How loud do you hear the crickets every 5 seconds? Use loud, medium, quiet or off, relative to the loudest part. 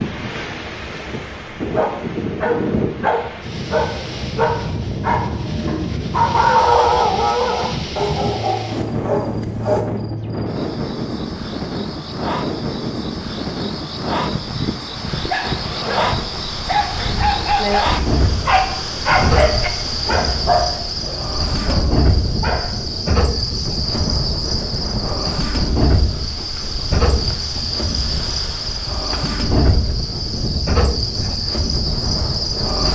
quiet, medium, medium, loud, loud, loud, loud.